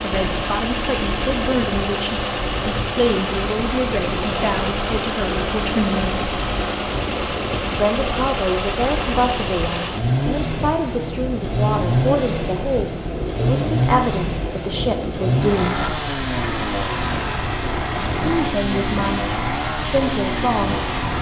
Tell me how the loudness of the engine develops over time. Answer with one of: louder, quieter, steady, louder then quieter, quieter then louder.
steady.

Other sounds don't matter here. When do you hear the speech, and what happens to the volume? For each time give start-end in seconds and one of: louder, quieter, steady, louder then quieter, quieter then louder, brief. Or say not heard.
0.0-6.3 steady
7.7-15.8 steady
18.2-21.0 brief.